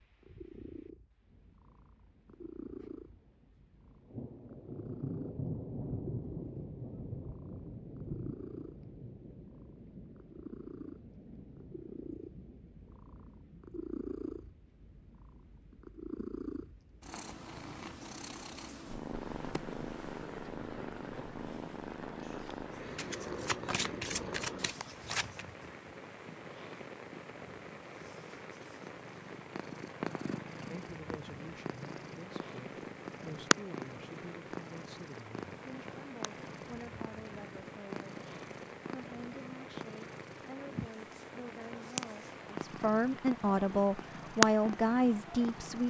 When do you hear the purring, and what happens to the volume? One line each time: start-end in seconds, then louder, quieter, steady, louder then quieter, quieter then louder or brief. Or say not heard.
0.0-45.8 louder.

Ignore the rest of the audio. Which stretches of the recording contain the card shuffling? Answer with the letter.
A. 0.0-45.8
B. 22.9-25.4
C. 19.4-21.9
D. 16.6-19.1
B.